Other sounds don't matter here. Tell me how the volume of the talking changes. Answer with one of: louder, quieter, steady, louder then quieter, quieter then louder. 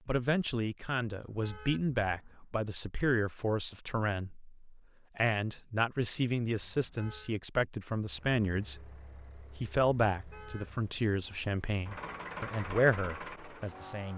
steady.